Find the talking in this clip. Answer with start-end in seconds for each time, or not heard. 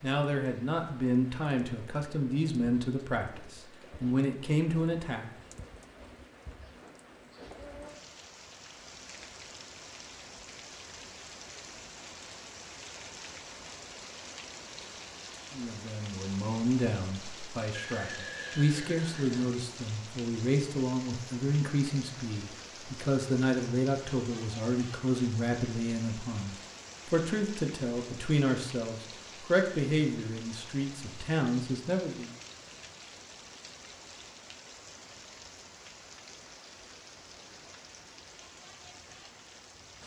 0.0-5.2, 15.5-32.3.